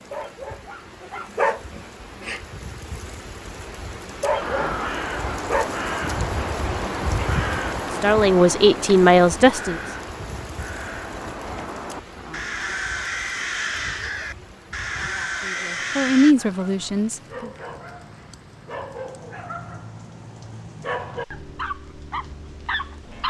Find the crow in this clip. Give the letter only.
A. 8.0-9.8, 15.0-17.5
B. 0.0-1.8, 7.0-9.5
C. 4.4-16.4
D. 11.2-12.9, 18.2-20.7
C.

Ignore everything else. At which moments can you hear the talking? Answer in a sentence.
You can hear the talking from 8.0 to 9.8 s and from 15.0 to 17.5 s.